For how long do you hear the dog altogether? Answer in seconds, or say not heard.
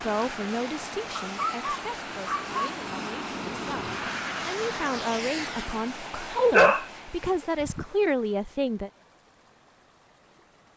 3 s.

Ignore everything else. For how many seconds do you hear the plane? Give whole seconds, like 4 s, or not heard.
6 s.